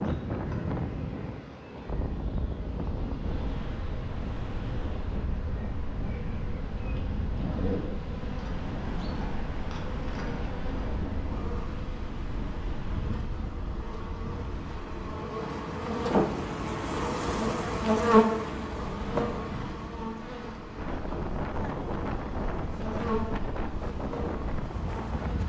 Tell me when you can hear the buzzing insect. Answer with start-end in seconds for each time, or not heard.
0.0-25.4.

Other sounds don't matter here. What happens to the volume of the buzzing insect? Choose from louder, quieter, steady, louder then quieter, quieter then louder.
louder then quieter.